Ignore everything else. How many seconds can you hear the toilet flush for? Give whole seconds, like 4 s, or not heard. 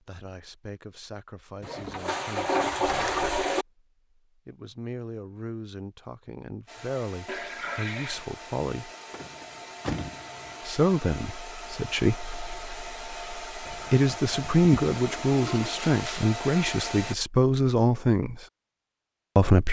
5 s.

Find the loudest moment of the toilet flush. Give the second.
3 s.